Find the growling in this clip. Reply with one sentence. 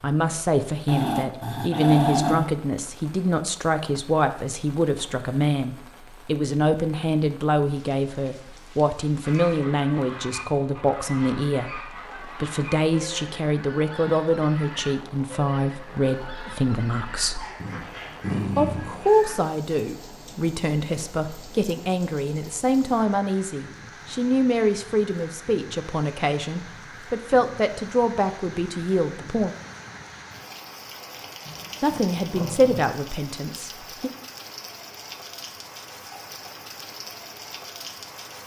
The growling can be heard from 0.8 to 2.5 s, from 17.6 to 18.9 s and from 31.4 to 32.9 s.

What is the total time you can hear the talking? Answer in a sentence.
You can hear the talking for 31 seconds altogether.